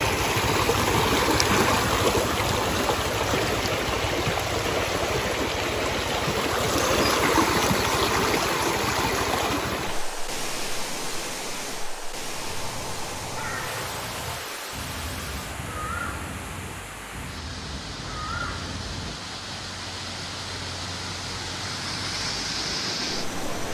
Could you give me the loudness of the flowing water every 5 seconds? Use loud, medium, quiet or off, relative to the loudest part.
loud, loud, medium, quiet, medium.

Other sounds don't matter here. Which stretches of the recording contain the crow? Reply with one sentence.
The crow can be heard from 12.3 to 19.1 s.